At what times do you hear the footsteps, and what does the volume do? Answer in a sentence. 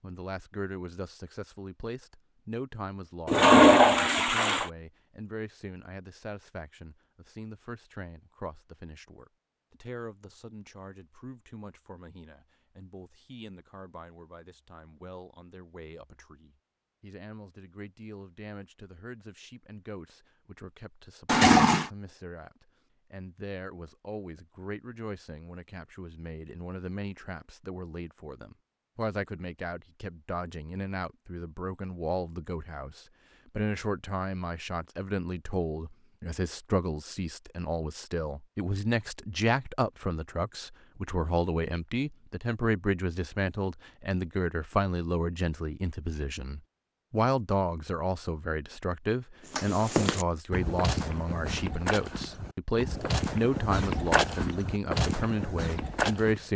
You can hear the footsteps from 49.5 to 56.5 s, getting quieter then louder.